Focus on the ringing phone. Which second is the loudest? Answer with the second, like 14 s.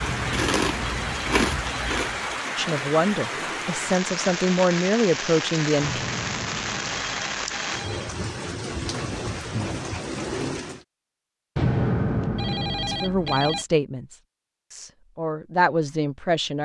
12 s.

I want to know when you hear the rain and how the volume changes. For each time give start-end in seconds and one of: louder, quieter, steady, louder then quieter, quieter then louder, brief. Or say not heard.
0.0-10.8 steady.